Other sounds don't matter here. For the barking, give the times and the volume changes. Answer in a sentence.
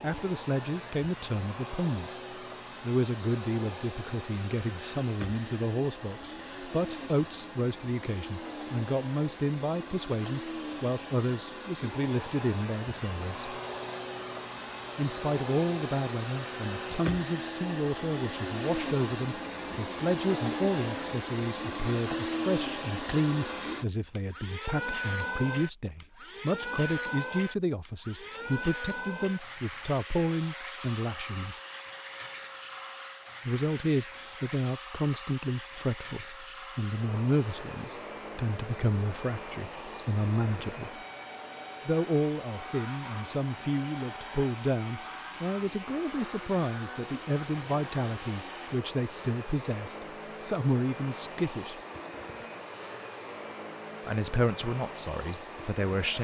You can't hear the barking here.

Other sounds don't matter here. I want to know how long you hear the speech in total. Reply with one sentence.
You can hear the speech for 49 seconds altogether.